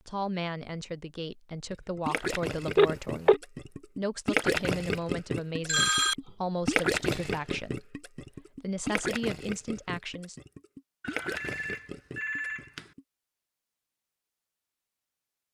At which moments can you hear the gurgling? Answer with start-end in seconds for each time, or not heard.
1.7-13.1.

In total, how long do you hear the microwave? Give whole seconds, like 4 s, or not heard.
not heard.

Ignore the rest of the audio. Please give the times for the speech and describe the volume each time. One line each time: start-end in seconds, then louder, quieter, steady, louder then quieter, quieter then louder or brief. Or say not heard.
0.1-10.3 steady.